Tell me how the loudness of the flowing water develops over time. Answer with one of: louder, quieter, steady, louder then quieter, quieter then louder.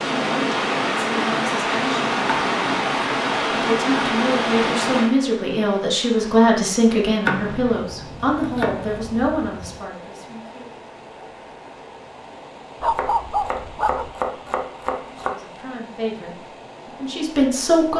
quieter.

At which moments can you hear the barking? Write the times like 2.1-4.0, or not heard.
12.8-14.2.